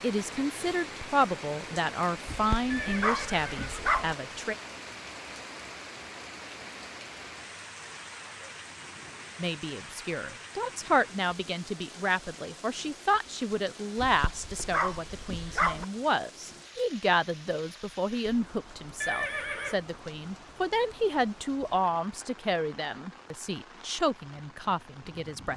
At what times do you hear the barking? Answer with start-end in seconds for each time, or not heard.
2.2-4.2, 13.9-15.8.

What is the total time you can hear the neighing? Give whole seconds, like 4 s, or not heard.
2 s.